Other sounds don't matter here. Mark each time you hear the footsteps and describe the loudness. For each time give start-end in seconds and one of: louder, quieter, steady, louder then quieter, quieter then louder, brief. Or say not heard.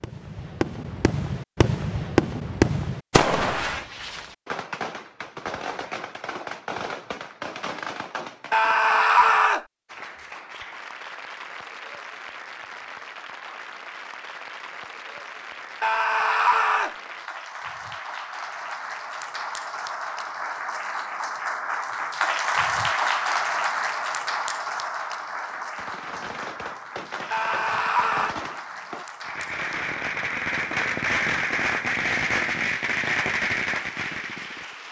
not heard.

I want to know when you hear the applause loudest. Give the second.
23 s.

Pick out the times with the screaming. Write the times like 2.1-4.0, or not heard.
8.5-9.7, 15.8-16.9, 27.3-28.4.